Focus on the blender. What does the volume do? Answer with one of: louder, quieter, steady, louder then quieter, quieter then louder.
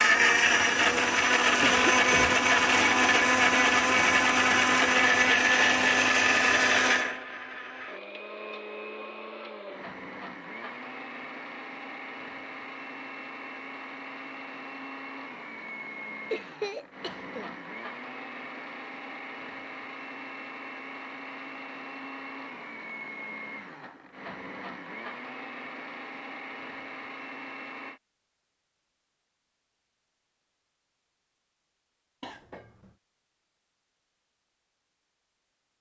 quieter.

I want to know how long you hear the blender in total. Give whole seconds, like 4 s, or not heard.
28 s.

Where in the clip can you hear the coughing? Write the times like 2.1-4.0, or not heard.
1.6-2.4, 16.3-17.5, 32.2-33.0.